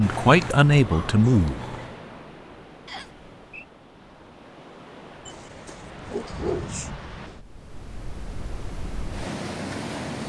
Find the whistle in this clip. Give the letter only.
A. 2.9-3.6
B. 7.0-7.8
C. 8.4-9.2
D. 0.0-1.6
A.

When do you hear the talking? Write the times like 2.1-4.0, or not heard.
0.0-1.6.